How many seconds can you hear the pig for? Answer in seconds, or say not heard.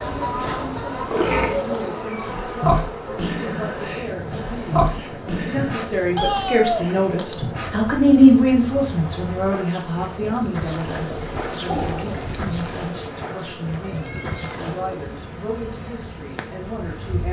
8 s.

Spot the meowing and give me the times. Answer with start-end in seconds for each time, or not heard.
1.1-2.5, 6.2-7.3, 12.9-14.6.